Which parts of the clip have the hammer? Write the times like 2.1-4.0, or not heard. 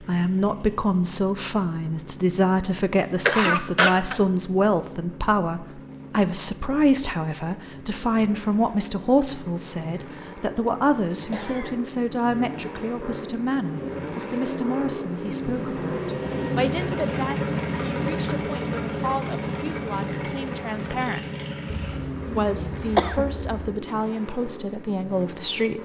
not heard.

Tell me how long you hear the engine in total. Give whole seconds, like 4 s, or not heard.
26 s.